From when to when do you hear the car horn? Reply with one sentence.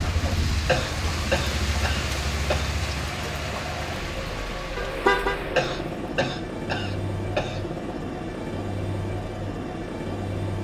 You can hear the car horn from 4.8 to 5.4 s.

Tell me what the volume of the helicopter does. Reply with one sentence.
The loudness of the helicopter goes up.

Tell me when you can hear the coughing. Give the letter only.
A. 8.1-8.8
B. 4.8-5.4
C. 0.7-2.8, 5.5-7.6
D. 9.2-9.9
C.